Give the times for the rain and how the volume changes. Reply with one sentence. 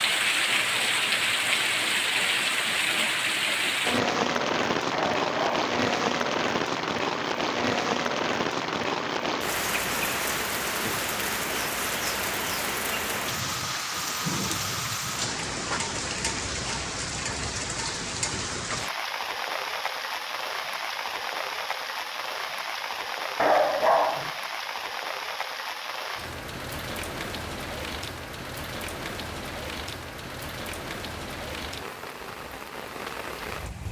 The rain can be heard from 0.0 to 33.8 s, getting quieter.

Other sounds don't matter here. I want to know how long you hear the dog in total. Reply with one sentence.
You can hear the dog for 2 seconds altogether.